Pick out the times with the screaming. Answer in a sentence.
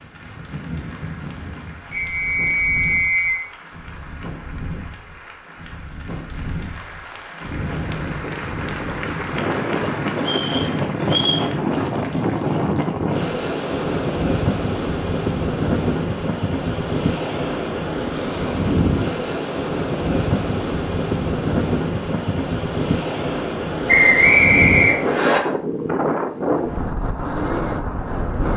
The screaming can't be heard in this clip.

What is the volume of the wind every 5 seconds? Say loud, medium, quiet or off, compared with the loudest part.
quiet, medium, loud, loud, loud, loud.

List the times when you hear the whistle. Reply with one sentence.
The whistle can be heard from 1.9 to 3.4 s, from 10.2 to 11.4 s and from 23.9 to 25.4 s.